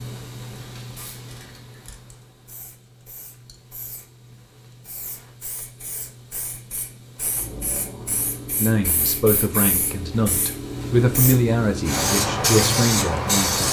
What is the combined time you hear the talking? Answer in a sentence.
The talking can be heard for 5 seconds in total.